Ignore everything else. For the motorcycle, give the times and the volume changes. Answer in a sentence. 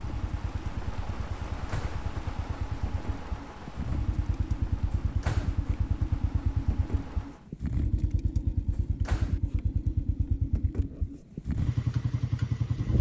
The motorcycle can be heard from 0.0 to 12.9 s, getting louder.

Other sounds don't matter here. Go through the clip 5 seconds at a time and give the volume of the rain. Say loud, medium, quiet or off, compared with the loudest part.
loud, medium, off.